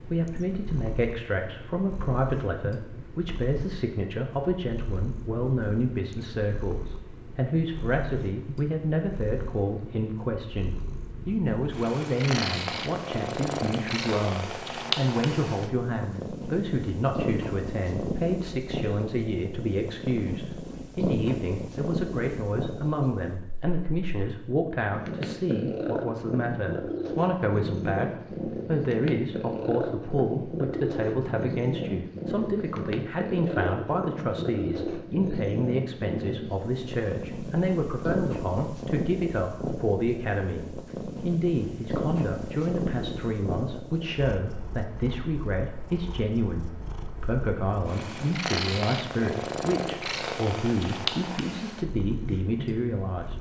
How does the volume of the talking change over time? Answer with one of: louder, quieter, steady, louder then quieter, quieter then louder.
steady.